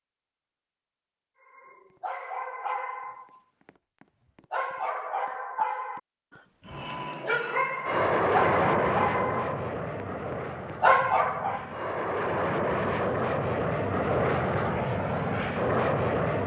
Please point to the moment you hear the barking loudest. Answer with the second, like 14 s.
11 s.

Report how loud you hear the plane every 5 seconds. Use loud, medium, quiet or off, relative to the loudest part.
off, loud, loud, loud.